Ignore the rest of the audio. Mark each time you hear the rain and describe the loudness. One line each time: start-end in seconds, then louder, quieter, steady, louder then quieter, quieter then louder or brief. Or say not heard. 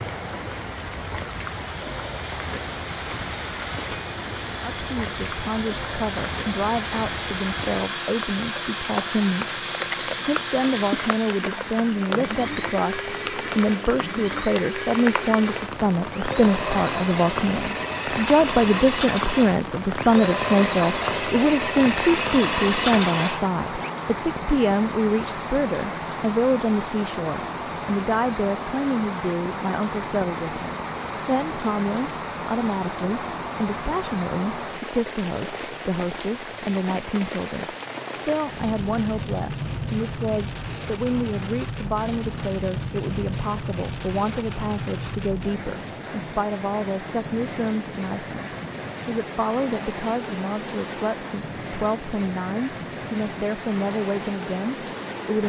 0.0-55.4 steady.